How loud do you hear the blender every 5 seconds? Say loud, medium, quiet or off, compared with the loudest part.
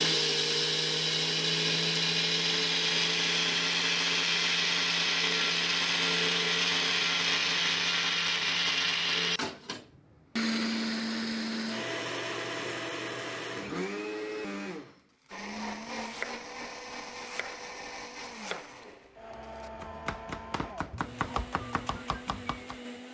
loud, loud, medium, quiet, quiet.